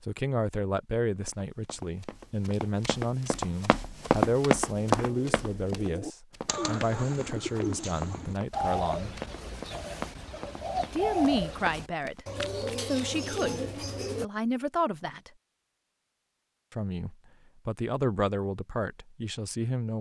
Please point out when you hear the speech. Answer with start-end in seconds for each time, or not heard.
0.0-9.2, 10.9-15.3, 16.7-19.9.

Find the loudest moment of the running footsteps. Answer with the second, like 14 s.
4 s.